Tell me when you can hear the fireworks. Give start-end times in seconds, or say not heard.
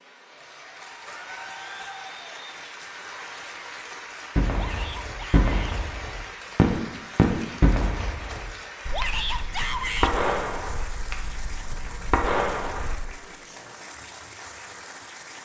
4.3-12.9.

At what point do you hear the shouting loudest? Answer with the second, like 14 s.
10 s.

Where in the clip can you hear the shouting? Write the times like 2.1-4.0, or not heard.
4.5-5.8, 8.9-10.2.